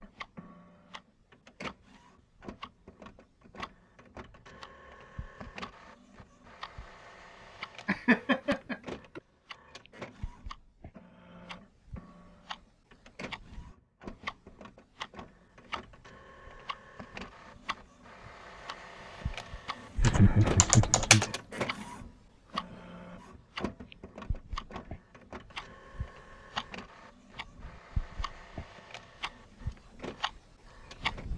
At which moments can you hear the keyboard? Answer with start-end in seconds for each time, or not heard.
19.6-21.3.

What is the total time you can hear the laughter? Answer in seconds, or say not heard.
3 s.